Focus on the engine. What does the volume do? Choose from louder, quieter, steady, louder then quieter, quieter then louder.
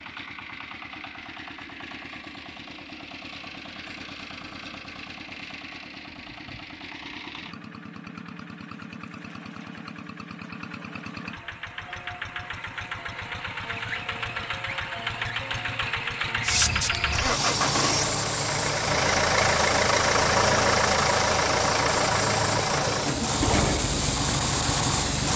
louder.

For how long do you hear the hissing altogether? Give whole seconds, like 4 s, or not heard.
9 s.